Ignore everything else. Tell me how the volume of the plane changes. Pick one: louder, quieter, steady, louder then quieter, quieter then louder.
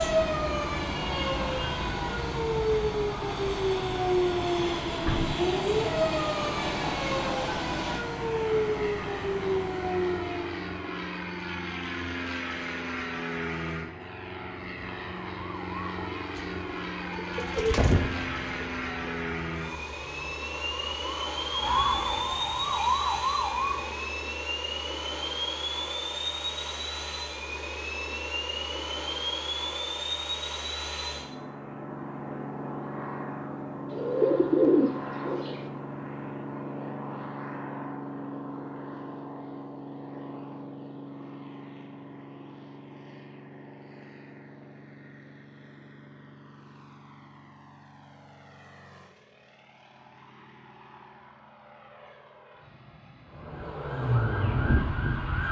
quieter.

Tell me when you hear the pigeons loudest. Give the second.
35 s.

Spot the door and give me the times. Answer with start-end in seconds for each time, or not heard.
4.8-5.5.